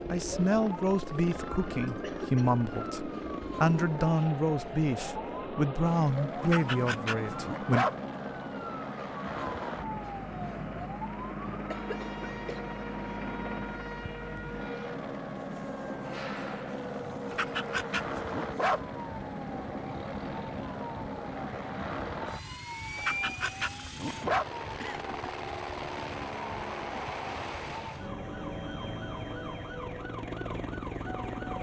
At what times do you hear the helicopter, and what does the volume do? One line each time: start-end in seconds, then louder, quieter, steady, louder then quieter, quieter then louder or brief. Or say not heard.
0.0-31.5 steady.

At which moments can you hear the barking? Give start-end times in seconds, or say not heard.
6.4-8.0, 17.3-18.9, 22.9-24.4.